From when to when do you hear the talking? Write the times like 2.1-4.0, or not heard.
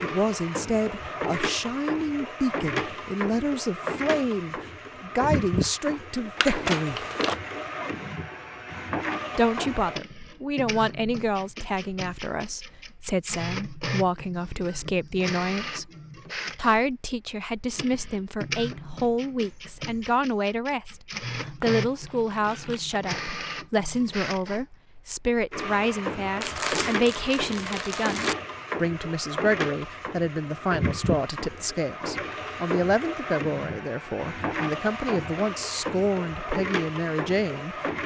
0.0-7.0, 9.3-15.9, 16.6-38.0.